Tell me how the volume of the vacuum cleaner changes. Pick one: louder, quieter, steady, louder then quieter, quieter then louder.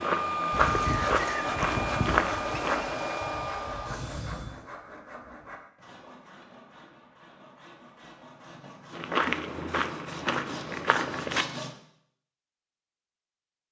quieter.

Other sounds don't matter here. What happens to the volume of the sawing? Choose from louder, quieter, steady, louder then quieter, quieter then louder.
quieter then louder.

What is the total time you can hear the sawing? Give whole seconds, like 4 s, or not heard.
11 s.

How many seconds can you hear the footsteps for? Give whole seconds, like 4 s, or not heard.
6 s.